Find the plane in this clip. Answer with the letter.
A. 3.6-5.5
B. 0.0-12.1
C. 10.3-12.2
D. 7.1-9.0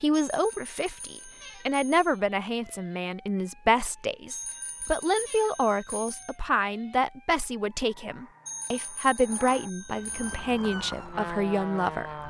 C.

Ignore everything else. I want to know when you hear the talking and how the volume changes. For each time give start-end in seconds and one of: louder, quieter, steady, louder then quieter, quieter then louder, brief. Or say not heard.
0.0-12.1 steady.